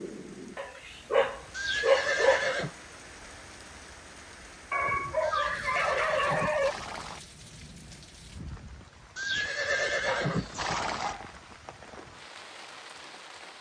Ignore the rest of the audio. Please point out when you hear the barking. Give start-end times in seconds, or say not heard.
0.6-2.5, 4.7-6.8, 10.1-11.3.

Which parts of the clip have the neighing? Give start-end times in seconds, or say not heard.
1.5-2.7, 5.2-7.2, 9.2-11.2.